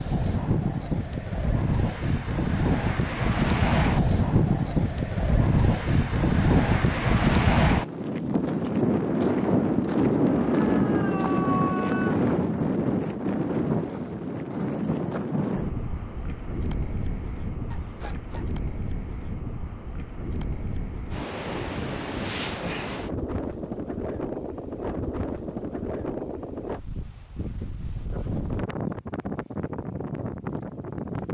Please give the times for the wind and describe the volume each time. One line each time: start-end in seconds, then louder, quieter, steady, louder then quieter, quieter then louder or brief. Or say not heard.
0.0-31.2 quieter.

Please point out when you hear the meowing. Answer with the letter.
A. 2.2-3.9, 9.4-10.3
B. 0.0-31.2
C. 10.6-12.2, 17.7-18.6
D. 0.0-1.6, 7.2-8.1
C.